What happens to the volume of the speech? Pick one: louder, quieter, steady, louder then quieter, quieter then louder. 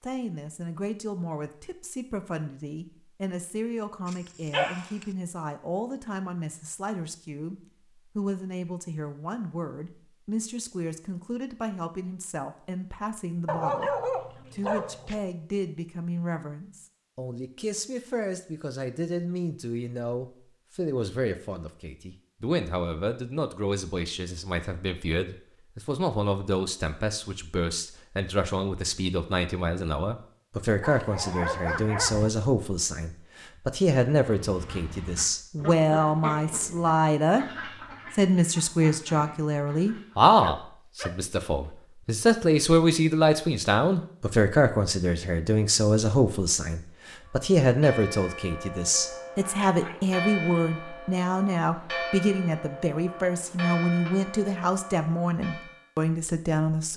louder.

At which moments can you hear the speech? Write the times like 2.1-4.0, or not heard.
0.0-37.5, 38.1-56.9.